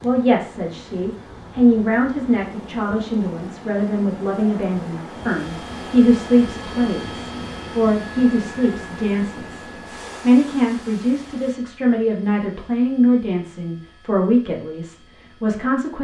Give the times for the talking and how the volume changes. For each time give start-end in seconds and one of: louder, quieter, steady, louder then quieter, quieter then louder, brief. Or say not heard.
0.0-15.9 steady.